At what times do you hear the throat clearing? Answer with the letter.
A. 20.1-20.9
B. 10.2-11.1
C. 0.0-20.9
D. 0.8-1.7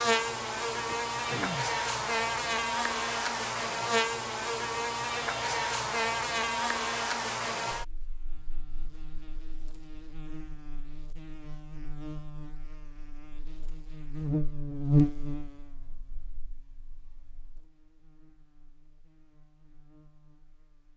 D.